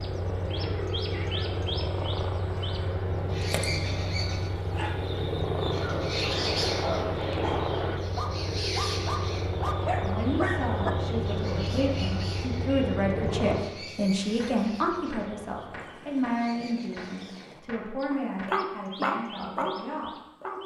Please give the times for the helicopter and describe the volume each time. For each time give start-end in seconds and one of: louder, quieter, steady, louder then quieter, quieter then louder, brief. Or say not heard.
0.0-17.6 quieter.